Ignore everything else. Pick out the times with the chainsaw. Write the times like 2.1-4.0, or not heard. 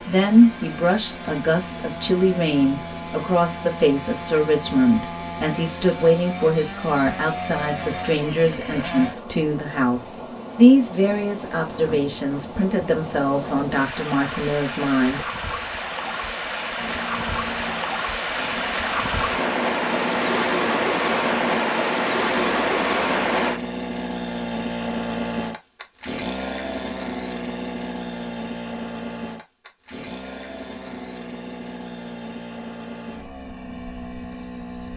0.0-9.2, 16.7-34.9.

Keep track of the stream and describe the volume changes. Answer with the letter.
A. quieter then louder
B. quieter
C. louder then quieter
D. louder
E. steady
D.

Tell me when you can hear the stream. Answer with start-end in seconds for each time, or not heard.
0.0-23.6.